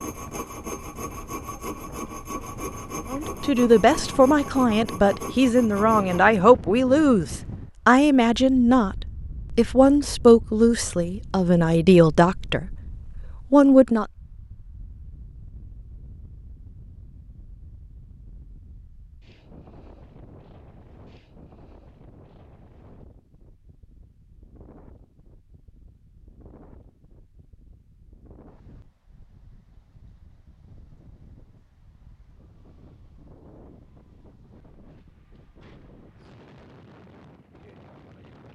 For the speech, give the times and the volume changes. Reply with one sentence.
You can hear the speech from 3.1 to 14.1 s, at a steady volume.